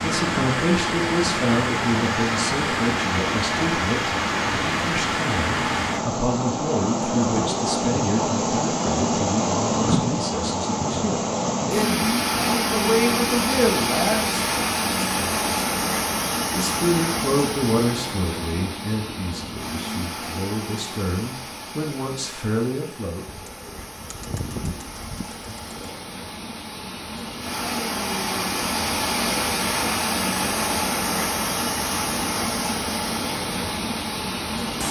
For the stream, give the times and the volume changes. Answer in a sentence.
You can hear the stream from 0.0 to 34.8 s, getting quieter then louder.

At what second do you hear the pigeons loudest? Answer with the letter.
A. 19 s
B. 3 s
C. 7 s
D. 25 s
D.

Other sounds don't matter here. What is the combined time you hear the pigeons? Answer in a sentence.
You can hear the pigeons for 3 seconds altogether.